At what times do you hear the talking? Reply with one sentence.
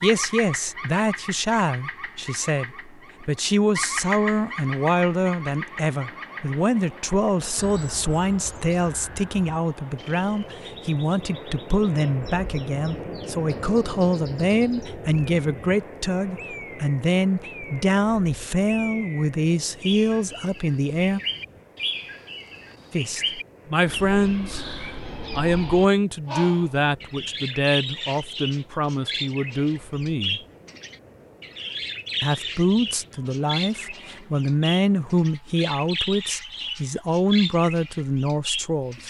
The talking can be heard from 0.0 to 21.2 s, from 22.9 to 30.4 s and from 32.2 to 39.0 s.